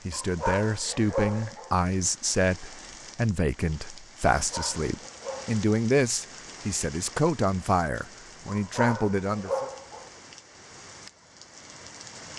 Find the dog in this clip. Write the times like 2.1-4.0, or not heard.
0.1-1.8, 4.3-5.6, 8.4-10.1.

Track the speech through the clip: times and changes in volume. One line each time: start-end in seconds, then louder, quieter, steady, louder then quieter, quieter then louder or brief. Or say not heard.
0.1-9.7 steady.